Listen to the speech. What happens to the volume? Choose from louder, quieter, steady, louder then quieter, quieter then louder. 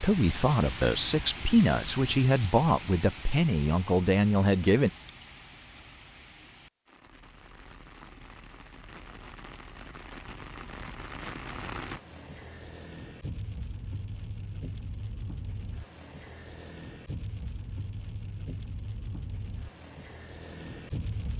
steady.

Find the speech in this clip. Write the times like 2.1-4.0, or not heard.
0.0-4.9.